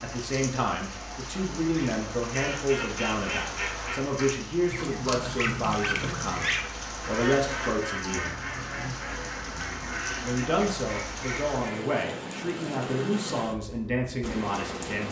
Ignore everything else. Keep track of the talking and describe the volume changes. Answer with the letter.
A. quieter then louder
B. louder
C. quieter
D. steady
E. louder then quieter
D.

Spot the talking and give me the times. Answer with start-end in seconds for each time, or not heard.
0.0-8.3, 10.2-15.0.